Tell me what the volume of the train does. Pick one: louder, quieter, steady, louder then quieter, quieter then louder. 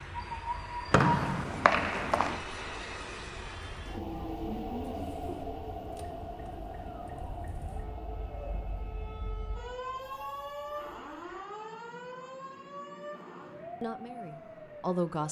quieter.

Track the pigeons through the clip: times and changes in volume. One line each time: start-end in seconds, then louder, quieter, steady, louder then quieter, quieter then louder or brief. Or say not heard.
not heard.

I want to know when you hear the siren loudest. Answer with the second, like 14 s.
10 s.